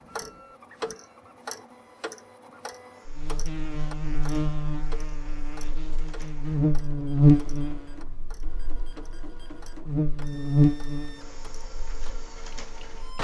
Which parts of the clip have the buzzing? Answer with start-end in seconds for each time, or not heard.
3.0-13.2.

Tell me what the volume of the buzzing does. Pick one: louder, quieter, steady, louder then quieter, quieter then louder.
louder then quieter.